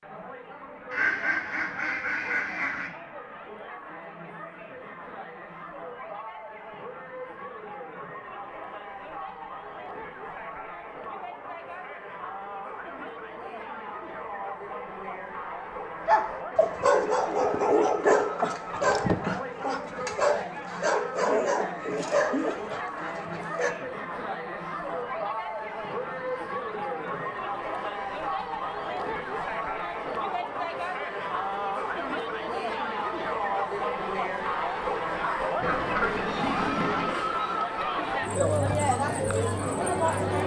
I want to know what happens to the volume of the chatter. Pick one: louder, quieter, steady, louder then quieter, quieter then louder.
louder.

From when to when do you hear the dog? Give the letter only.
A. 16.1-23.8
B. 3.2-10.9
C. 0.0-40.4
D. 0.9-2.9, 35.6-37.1
A.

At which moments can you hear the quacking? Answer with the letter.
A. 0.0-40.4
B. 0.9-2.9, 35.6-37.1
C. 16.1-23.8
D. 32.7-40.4
B.